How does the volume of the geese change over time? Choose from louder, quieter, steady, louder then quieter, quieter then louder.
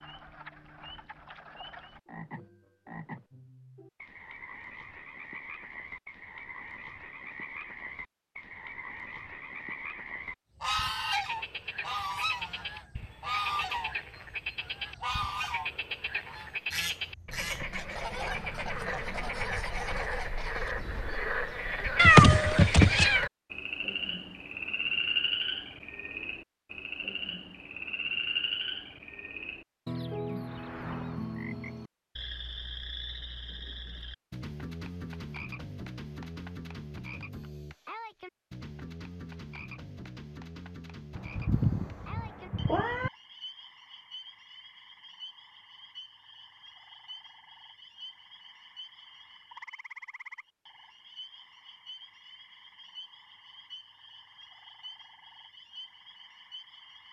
quieter.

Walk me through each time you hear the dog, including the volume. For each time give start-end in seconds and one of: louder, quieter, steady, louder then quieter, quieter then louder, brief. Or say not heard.
not heard.